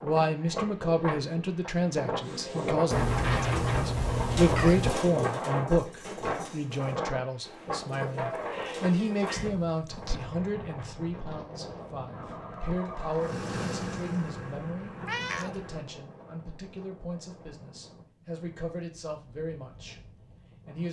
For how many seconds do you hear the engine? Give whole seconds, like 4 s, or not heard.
4 s.